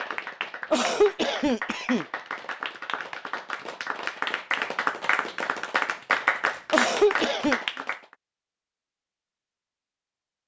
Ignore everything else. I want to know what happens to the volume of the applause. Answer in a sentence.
The loudness of the applause goes up.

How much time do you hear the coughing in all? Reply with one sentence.
You can hear the coughing for 2 seconds altogether.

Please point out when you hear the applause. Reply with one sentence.
You can hear the applause from 0.0 to 8.0 s.